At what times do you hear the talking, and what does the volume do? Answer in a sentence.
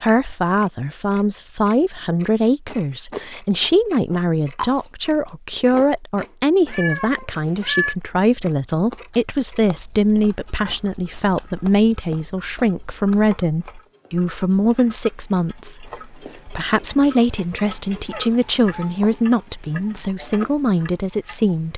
You can hear the talking from 0.0 to 21.7 s, at a steady volume.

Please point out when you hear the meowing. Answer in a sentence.
The meowing can be heard from 6.7 to 8.0 s and from 18.1 to 19.1 s.